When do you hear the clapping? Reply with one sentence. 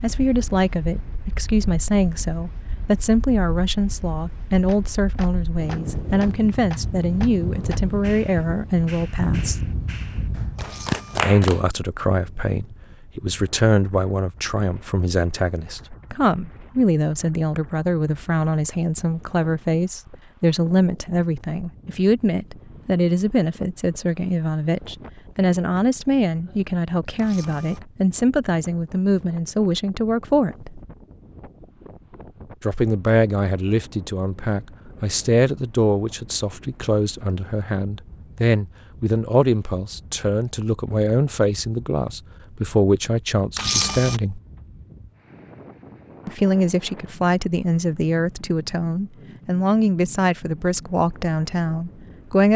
The clapping can be heard from 4.7 to 11.6 s.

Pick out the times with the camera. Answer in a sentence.
The camera can be heard from 10.6 to 11.2 s, from 27.1 to 27.8 s and from 43.5 to 44.2 s.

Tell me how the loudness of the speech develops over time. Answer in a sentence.
The loudness of the speech stays about the same.